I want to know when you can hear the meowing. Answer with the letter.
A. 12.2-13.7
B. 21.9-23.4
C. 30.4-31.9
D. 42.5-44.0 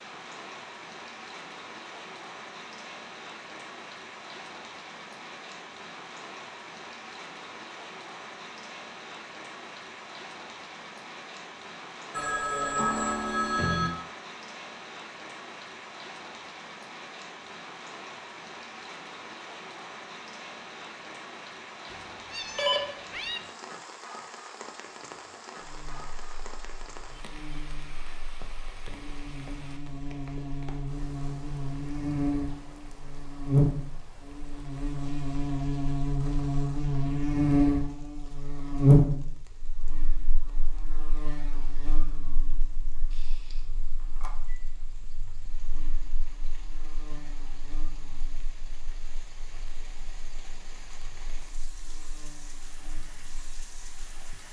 B.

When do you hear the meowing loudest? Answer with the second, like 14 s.
23 s.